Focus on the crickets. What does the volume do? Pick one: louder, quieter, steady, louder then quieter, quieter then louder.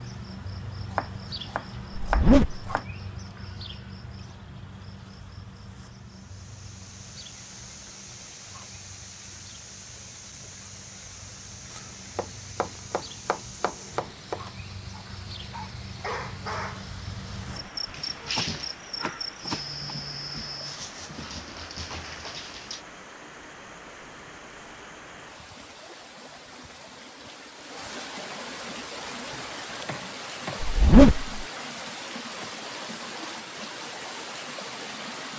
quieter then louder.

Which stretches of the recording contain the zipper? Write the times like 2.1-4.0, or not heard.
2.0-2.6, 30.6-31.4.